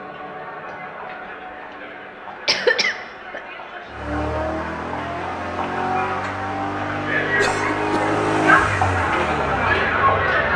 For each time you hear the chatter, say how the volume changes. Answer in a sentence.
You can hear the chatter from 0.0 to 10.5 s, getting louder.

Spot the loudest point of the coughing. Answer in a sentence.
The volume of the coughing peaks at 3 seconds.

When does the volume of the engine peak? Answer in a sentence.
The volume of the engine peaks at 8 seconds.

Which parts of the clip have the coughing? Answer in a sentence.
The coughing can be heard from 2.5 to 3.4 s and from 7.3 to 8.2 s.